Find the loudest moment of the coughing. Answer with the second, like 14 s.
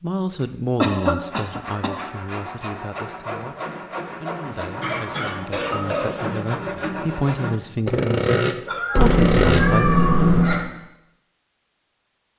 1 s.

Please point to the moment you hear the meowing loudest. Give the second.
10 s.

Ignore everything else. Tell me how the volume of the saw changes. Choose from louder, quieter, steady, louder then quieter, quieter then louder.
louder.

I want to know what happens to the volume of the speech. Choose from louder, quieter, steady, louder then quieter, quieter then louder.
quieter then louder.